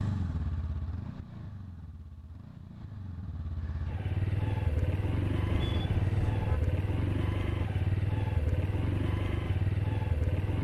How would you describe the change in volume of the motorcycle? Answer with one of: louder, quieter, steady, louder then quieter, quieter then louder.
louder.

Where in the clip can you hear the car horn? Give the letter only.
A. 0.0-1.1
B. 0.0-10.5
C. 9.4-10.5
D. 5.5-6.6
D.